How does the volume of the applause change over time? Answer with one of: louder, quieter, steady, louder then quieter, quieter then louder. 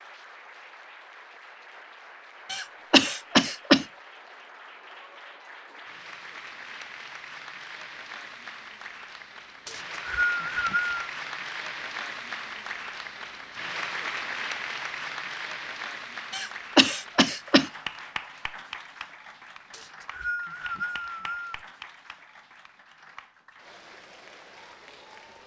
louder then quieter.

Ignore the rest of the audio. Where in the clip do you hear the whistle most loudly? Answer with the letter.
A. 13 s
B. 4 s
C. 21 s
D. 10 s
D.